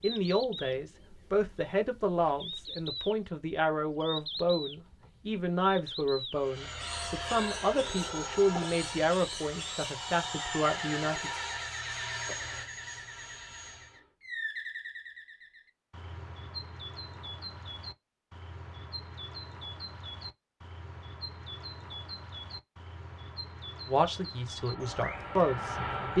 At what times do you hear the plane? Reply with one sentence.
You can hear the plane from 6.3 to 14.1 s and from 24.5 to 26.1 s.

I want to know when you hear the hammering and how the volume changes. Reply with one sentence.
The hammering can't be heard in this clip.